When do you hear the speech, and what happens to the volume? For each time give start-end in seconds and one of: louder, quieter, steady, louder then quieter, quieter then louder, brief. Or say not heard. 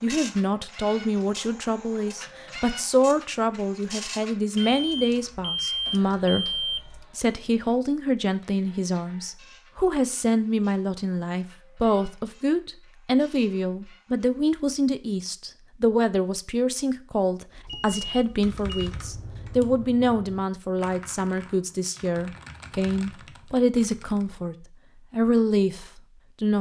0.0-26.5 steady.